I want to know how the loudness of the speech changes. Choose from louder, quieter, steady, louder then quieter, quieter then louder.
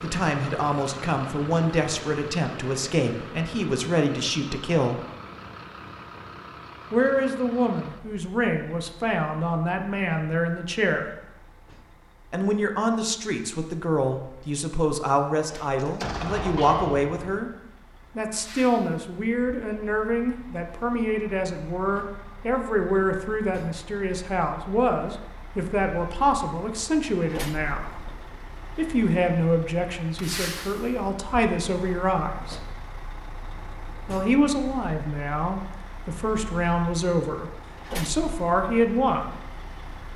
steady.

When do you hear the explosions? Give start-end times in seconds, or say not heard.
15.8-17.4.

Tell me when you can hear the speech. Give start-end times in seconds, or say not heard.
0.0-5.0, 6.9-11.1, 12.3-17.5, 18.1-27.9, 28.8-32.6, 34.0-39.4.